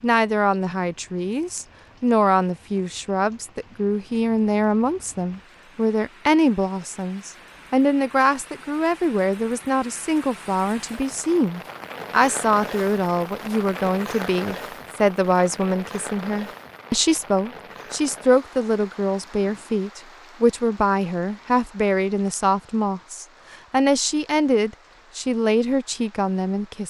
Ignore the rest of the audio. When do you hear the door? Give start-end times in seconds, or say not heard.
not heard.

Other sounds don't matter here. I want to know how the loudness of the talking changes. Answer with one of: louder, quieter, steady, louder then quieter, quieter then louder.
steady.